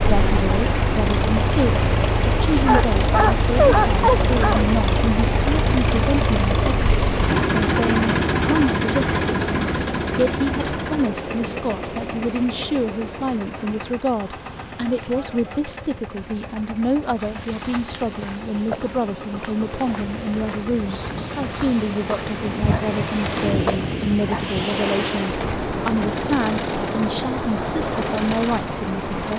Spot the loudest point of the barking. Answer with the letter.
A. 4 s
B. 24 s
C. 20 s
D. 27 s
A.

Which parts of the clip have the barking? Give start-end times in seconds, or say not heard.
2.6-4.7, 22.6-24.6.